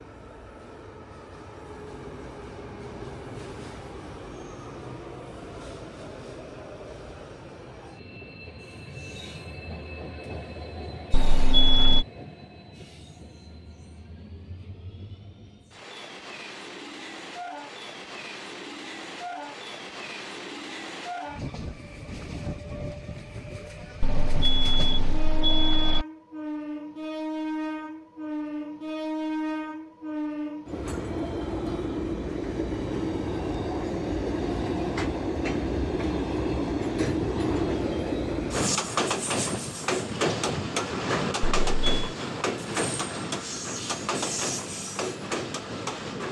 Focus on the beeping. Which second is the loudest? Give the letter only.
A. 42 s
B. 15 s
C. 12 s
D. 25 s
C.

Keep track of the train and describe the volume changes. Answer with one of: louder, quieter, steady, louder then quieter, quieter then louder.
louder.